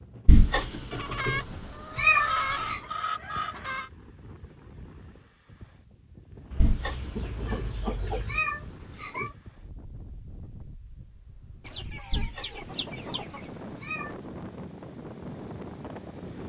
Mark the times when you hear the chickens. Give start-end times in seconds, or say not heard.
0.9-3.9, 6.5-8.4, 11.6-13.5.